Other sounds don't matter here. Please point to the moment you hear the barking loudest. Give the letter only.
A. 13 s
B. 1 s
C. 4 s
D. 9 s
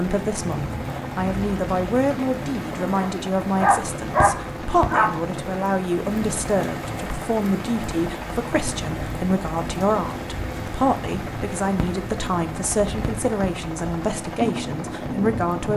C.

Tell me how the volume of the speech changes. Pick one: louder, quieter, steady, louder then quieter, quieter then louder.
steady.